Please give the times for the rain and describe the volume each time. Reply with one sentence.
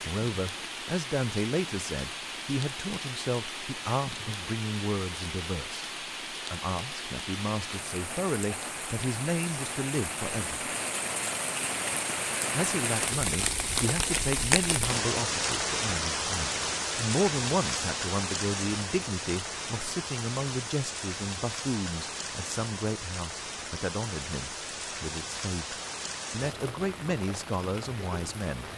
You can hear the rain from 0.0 to 28.7 s, getting louder then quieter.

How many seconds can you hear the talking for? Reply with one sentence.
The talking can be heard for 27 seconds in total.